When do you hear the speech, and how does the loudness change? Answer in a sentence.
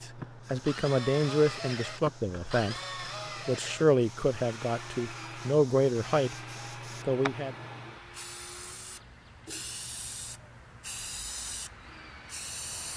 The speech can be heard from 0.0 to 6.3 s, getting quieter then louder; and briefly from 7.0 to 7.5 s.